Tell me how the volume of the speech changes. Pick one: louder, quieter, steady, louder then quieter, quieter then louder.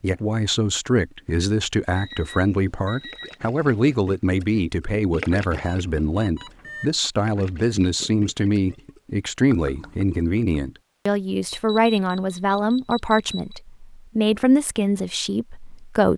steady.